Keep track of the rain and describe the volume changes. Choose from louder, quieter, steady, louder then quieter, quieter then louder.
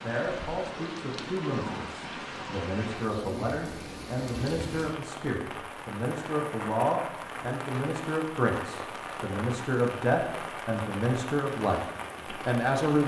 steady.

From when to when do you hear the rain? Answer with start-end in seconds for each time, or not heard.
0.0-13.0.